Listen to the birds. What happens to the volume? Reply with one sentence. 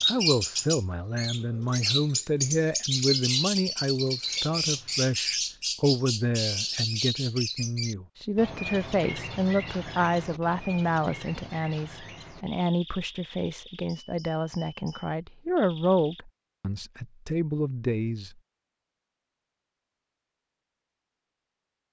The volume of the birds goes down.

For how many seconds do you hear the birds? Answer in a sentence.
You can hear the birds for 16 seconds altogether.